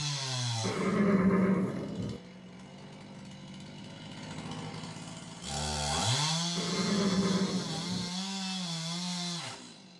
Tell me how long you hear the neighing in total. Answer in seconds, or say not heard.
3 s.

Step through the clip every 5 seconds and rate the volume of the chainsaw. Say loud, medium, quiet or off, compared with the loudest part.
medium, loud.